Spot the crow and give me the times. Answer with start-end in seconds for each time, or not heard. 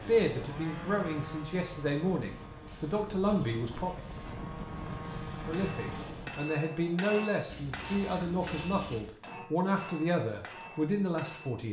not heard.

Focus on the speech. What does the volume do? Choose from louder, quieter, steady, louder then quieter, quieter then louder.
steady.